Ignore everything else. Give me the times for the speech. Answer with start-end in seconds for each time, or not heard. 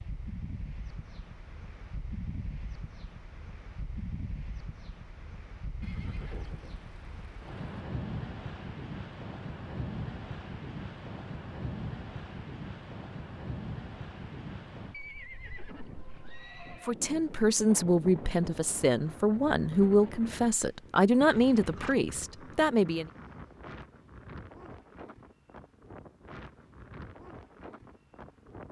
16.9-23.1.